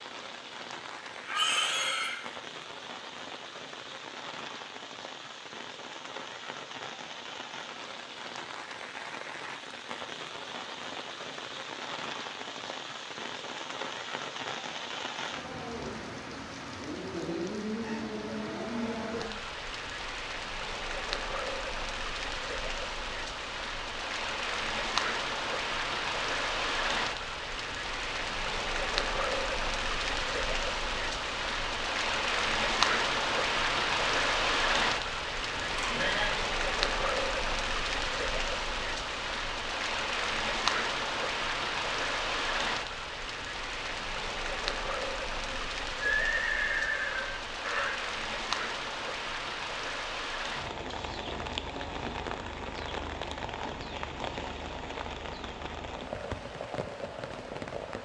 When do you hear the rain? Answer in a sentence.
You can hear the rain from 0.0 to 57.9 s.